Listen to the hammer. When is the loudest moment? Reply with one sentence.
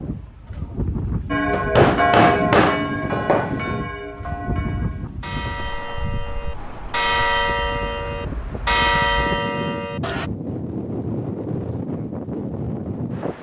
The volume of the hammer peaks at 2 seconds.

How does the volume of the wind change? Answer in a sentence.
The volume of the wind goes down, then up.